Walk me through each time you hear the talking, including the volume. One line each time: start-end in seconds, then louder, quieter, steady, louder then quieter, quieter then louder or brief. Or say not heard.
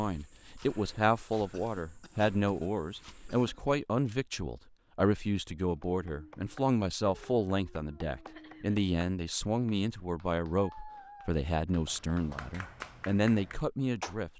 0.0-14.3 steady.